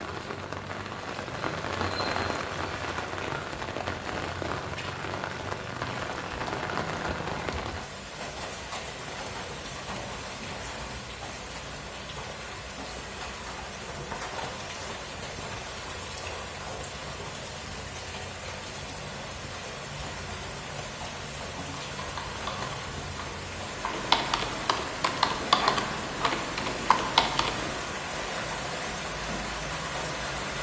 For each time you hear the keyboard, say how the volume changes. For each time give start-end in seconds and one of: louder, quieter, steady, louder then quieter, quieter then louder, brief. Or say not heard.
21.8-27.8 louder.